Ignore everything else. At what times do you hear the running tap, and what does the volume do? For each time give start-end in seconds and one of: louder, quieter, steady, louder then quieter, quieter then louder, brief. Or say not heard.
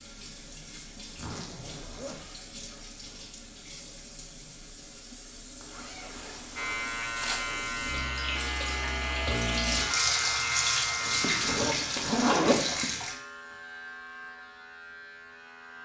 0.0-13.2 louder.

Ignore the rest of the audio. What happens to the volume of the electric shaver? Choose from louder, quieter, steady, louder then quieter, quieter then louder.
quieter.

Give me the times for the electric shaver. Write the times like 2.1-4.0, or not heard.
6.5-15.7.